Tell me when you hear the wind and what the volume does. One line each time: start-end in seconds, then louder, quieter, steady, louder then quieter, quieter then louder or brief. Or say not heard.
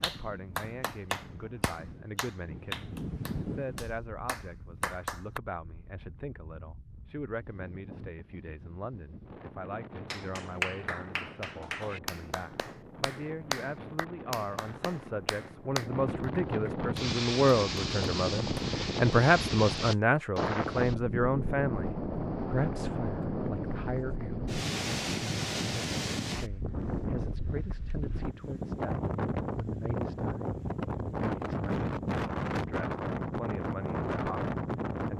0.0-35.1 louder.